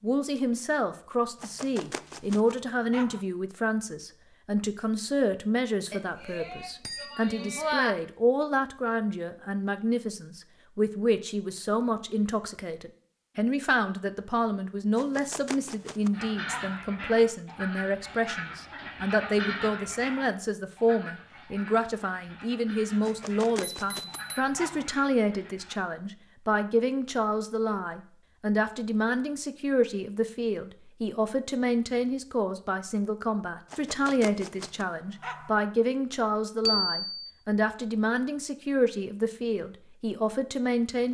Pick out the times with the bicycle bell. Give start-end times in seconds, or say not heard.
5.9-8.0, 23.6-24.4, 36.6-37.3.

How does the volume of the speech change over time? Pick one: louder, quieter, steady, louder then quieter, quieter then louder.
steady.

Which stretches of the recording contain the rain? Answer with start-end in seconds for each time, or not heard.
not heard.